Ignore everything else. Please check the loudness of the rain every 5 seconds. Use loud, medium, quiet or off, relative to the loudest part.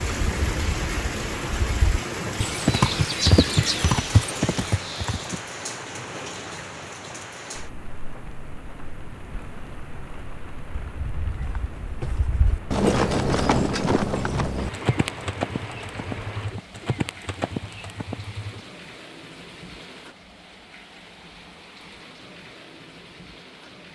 loud, medium, medium, medium, quiet.